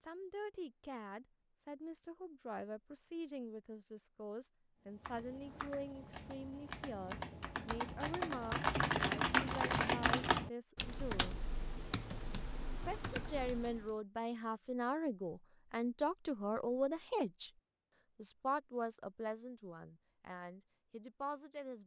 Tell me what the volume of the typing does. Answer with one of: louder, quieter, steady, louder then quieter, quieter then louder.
louder then quieter.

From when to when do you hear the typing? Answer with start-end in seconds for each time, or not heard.
5.0-13.9.